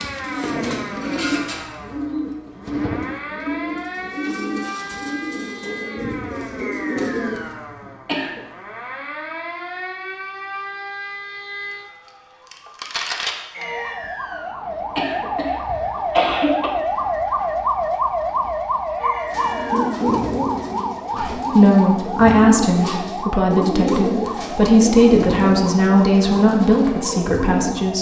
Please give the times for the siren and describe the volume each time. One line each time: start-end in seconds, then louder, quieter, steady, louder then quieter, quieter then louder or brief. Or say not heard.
0.0-27.9 louder then quieter.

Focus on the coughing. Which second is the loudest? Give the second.
16 s.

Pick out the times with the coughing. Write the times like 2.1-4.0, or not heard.
7.8-8.4, 14.7-16.7.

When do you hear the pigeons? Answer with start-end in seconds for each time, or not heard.
0.0-7.5, 19.3-27.9.